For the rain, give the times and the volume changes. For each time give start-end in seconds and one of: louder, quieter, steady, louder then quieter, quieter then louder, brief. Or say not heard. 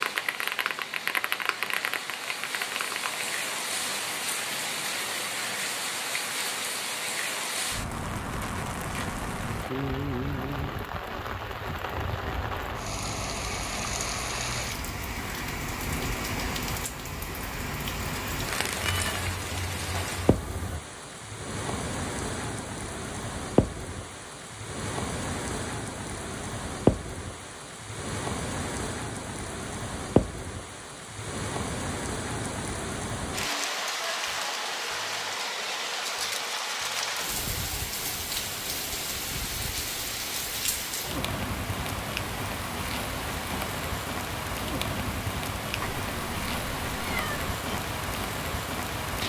0.0-49.2 steady.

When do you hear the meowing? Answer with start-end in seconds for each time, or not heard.
18.8-20.8, 45.8-47.7.